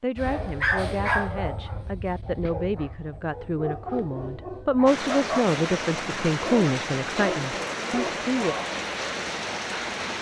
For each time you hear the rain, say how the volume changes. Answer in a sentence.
You can hear the rain from 4.8 to 10.1 s, at a steady volume.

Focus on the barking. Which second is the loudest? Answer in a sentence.
The loudest moment of the barking is at 1 second.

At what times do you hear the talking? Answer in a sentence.
You can hear the talking from 0.0 to 8.6 s.